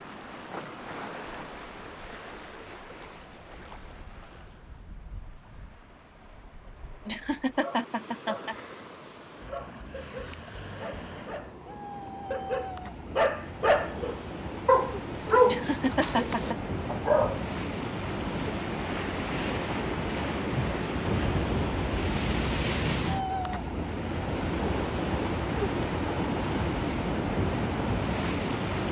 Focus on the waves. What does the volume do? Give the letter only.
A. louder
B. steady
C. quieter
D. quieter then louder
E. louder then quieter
A.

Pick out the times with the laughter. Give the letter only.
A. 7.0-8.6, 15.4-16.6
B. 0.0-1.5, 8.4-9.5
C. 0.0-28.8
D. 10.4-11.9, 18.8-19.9
A.